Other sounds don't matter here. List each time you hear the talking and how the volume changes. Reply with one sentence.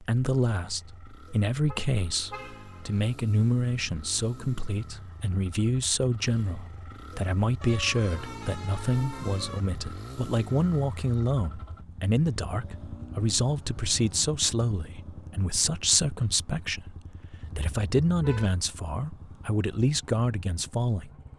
The talking can be heard from 0.0 to 21.1 s, at a steady volume.